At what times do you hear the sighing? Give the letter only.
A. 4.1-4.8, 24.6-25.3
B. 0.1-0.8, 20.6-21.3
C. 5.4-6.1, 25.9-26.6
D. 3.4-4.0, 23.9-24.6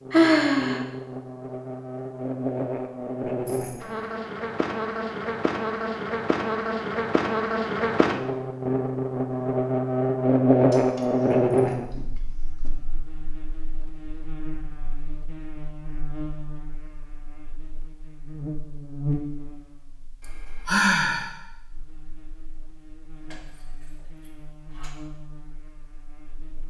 B.